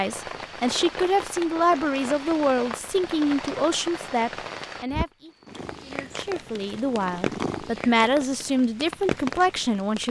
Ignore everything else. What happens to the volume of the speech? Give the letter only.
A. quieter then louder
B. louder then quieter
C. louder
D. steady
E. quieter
A.